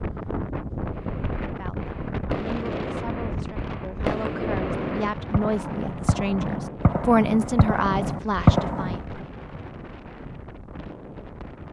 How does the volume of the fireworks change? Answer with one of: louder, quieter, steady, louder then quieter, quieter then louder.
louder.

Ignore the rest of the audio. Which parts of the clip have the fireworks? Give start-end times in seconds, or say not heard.
0.8-9.0.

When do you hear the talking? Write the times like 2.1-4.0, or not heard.
1.6-9.2.